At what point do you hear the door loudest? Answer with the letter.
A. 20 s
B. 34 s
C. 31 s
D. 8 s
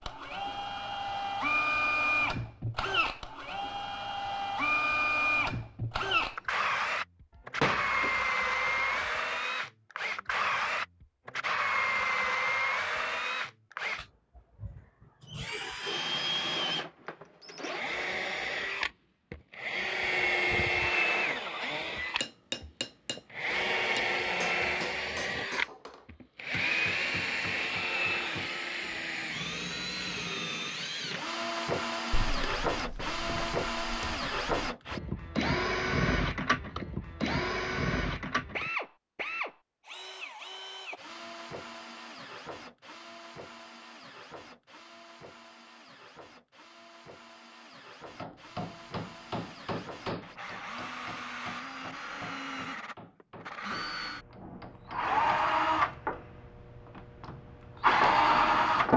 D.